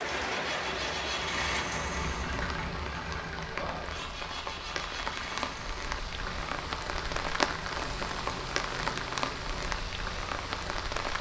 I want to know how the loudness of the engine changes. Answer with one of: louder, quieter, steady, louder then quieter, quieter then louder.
quieter.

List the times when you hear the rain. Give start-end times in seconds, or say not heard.
0.0-11.1.